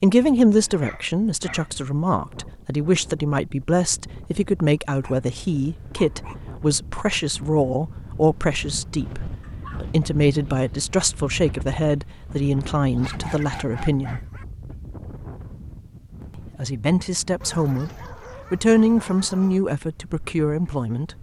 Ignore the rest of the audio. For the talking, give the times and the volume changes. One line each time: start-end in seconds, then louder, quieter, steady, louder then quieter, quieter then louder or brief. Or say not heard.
0.0-14.2 steady
16.6-17.9 brief
18.5-21.1 brief.